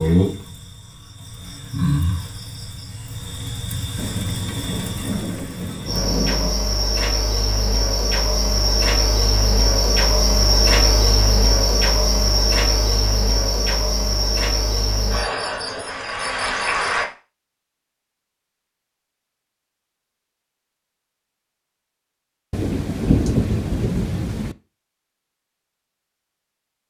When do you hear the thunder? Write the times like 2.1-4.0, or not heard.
4.0-6.6, 22.5-24.6.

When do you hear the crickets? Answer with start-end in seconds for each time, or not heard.
0.0-17.1.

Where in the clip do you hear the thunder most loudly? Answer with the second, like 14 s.
23 s.